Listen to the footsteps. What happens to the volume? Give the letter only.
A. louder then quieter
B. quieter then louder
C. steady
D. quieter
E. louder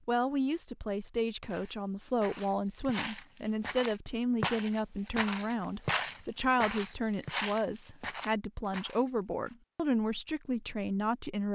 A.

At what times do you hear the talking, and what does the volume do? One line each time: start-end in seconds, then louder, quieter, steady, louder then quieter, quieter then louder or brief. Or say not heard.
0.1-11.5 steady.